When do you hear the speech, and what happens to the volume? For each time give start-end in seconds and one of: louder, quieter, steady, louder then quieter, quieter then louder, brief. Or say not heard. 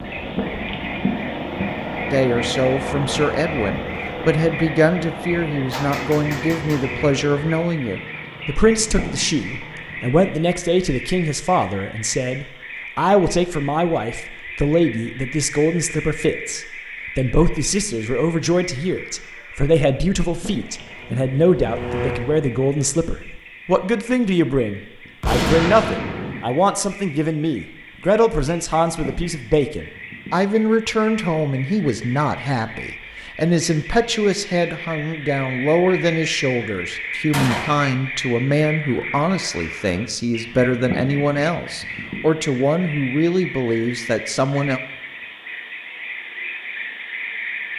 2.1-44.8 steady.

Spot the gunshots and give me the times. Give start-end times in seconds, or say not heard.
5.7-7.7, 25.2-26.5, 37.3-37.9.